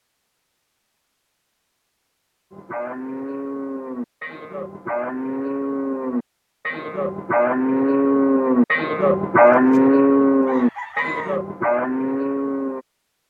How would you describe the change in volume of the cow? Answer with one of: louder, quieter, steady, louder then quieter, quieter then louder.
louder then quieter.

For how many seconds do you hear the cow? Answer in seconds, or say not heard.
10 s.